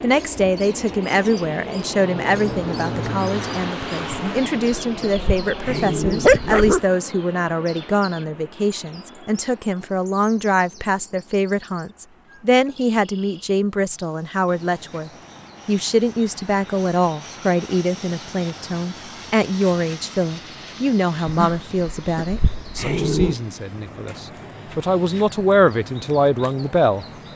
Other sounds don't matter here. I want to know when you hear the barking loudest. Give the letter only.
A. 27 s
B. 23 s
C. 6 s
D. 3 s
C.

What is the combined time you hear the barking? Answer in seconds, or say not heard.
5 s.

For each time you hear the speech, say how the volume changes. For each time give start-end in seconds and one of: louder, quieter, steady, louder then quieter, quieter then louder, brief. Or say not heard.
0.0-27.1 steady.